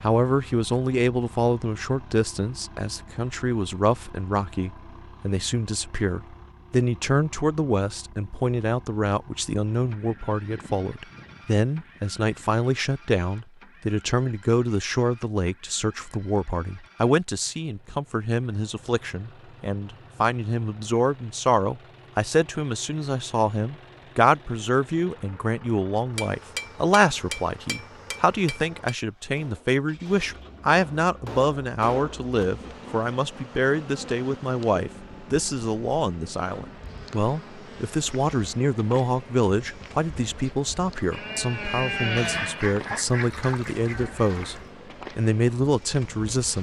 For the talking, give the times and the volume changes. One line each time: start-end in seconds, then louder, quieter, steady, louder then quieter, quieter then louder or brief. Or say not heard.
0.0-46.5 steady.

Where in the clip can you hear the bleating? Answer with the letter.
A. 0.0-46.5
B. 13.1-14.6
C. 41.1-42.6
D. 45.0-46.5
C.